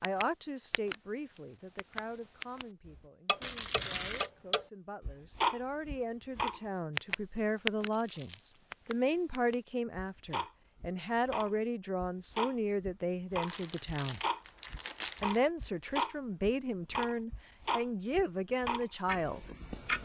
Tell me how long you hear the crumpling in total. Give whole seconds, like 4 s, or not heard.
4 s.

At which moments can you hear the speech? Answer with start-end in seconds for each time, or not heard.
0.0-14.2, 15.2-19.4.